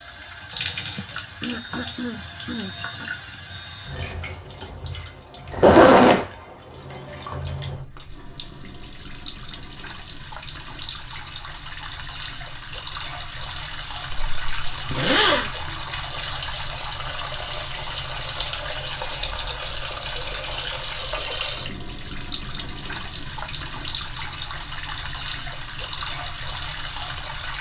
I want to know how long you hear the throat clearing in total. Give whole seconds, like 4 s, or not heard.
2 s.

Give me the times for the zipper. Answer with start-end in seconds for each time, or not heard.
5.5-6.2, 14.1-15.5.